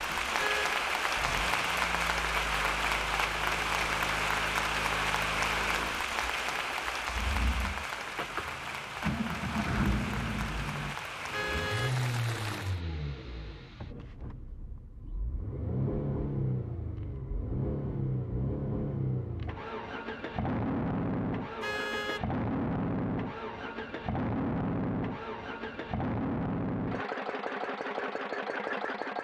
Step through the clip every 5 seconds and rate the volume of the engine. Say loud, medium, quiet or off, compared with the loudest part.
quiet, medium, medium, loud, loud, loud.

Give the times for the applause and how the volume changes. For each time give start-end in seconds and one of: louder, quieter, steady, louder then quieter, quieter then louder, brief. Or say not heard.
0.0-12.8 quieter.